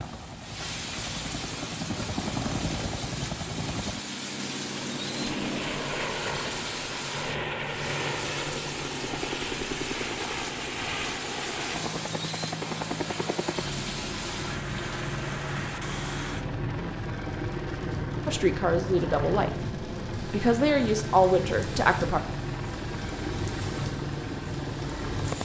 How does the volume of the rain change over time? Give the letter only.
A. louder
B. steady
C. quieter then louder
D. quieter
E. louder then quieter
B.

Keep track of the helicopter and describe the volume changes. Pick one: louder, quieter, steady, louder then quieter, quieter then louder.
steady.